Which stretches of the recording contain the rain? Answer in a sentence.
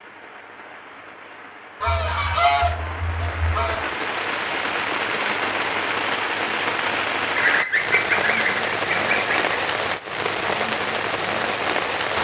You can hear the rain from 0.0 to 12.1 s.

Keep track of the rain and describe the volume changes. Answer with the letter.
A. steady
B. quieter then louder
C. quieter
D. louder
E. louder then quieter
D.